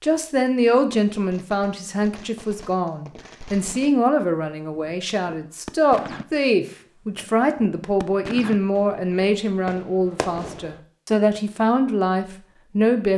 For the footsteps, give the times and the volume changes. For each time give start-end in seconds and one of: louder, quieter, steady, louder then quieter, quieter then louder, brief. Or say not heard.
not heard.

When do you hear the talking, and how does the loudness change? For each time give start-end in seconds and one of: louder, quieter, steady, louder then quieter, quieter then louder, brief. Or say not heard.
0.0-13.1 steady.